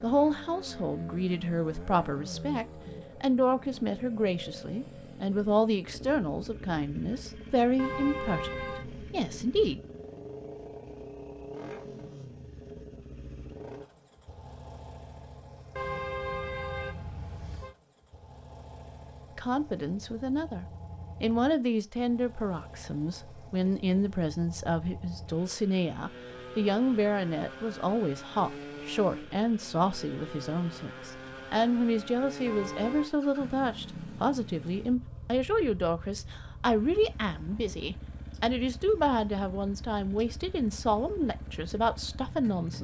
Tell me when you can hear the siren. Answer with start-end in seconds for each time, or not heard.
not heard.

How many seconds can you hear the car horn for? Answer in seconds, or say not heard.
4 s.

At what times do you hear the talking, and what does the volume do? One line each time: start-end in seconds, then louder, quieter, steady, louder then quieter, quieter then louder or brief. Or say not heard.
0.0-9.8 steady
19.4-42.7 steady.